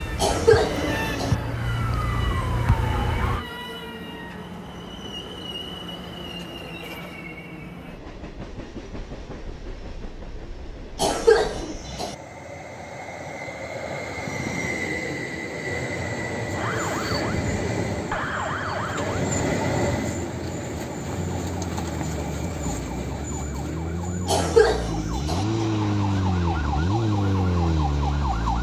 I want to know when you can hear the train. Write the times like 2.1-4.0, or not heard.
0.0-28.5.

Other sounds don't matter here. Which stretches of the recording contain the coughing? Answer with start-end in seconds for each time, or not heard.
0.1-1.4, 10.9-12.2, 24.2-25.4.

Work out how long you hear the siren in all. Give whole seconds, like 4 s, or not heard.
14 s.